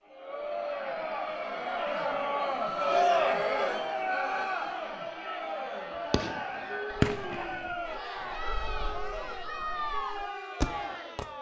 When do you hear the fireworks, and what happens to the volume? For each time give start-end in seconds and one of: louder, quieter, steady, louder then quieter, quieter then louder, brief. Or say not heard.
6.1-11.2 quieter then louder.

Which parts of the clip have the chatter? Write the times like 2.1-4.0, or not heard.
0.1-11.3.